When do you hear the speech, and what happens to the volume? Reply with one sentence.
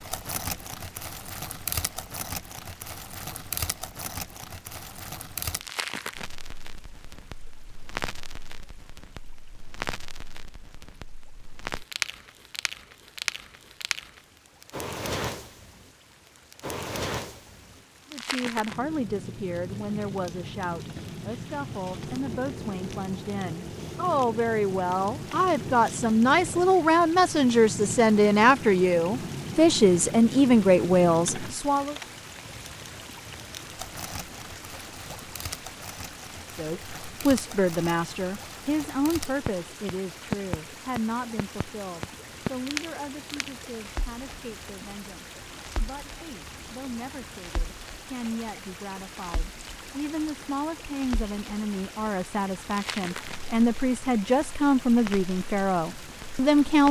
The speech can be heard from 18.1 to 31.9 s, getting louder; and from 36.5 to 56.8 s, getting quieter then louder.